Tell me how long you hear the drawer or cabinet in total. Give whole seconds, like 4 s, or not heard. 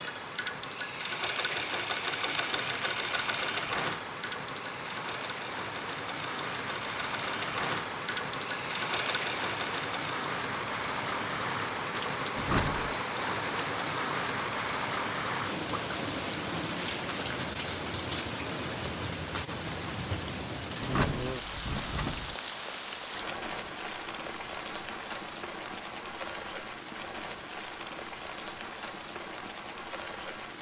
2 s.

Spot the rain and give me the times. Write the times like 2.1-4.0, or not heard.
0.0-30.5.